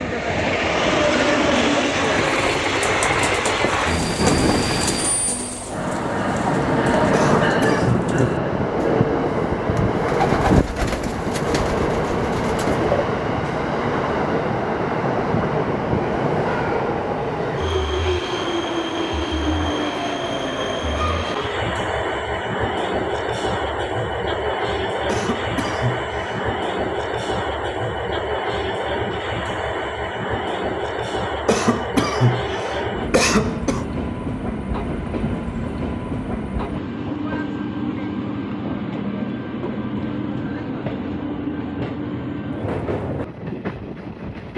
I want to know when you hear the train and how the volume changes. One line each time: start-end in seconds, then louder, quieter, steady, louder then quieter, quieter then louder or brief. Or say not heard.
0.0-44.5 quieter.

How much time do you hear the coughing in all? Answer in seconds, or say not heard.
5 s.